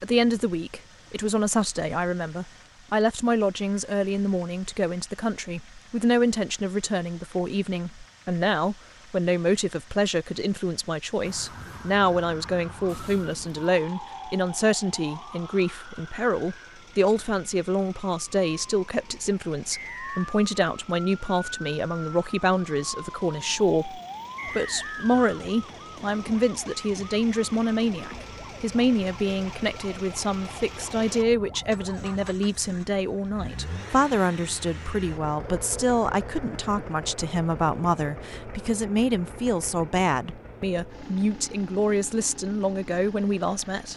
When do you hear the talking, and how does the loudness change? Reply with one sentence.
You can hear the talking from 0.0 to 43.9 s, at a steady volume.